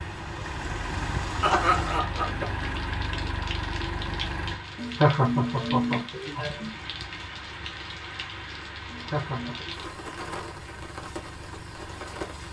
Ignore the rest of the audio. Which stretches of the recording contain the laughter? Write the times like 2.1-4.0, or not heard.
1.4-2.5, 4.8-6.8, 8.9-9.6.